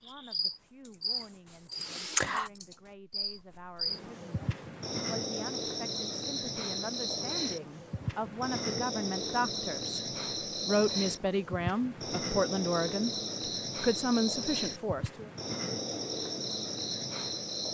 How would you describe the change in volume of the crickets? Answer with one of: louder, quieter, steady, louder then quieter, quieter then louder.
steady.